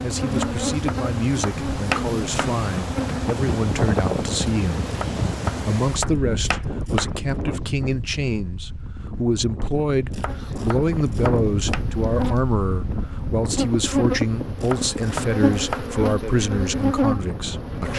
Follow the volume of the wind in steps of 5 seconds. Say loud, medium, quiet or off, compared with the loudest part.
loud, loud, loud, medium.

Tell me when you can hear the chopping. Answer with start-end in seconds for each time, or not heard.
0.3-2.5, 4.9-7.1, 10.1-11.8, 14.6-15.8.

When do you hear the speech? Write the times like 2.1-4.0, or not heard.
0.0-4.9, 5.5-17.9.